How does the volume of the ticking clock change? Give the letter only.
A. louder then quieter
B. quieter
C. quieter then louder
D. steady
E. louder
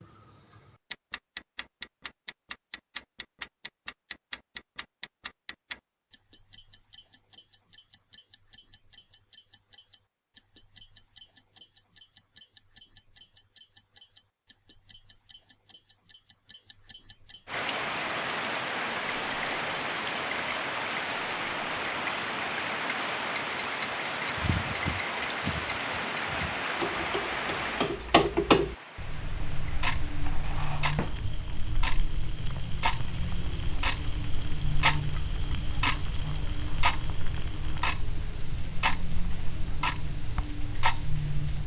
E.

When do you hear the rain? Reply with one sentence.
You can hear the rain from 17.4 to 41.6 s.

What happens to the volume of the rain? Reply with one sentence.
The loudness of the rain goes down.